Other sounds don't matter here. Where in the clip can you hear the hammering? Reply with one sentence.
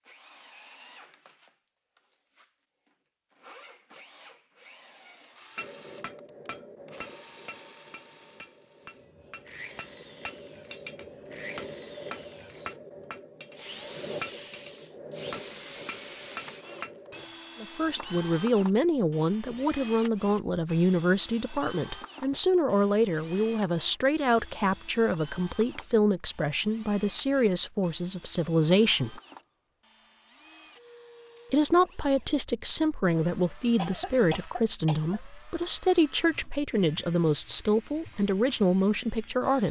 The hammering can be heard from 5.5 to 17.2 s.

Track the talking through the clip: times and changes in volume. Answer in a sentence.
The talking can be heard from 17.6 to 29.2 s, at a steady volume; and from 31.5 to 39.6 s, at a steady volume.